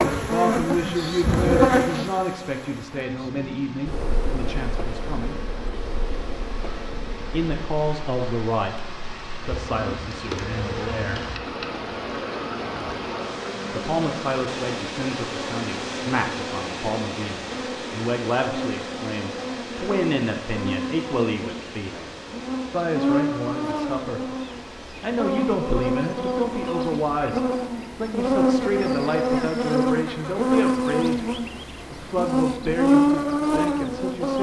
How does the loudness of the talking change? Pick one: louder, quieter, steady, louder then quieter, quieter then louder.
steady.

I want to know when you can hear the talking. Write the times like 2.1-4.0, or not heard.
0.1-5.5, 7.3-11.2, 13.7-22.1, 22.7-34.3.